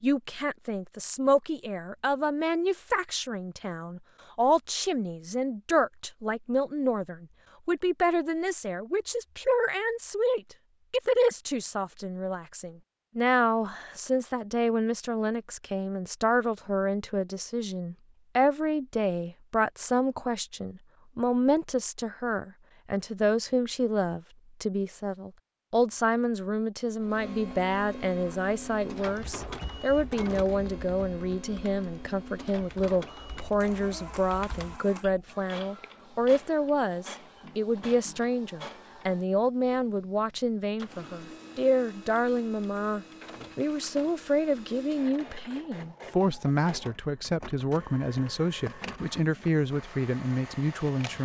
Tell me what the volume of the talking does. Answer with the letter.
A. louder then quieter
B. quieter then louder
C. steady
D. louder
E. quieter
C.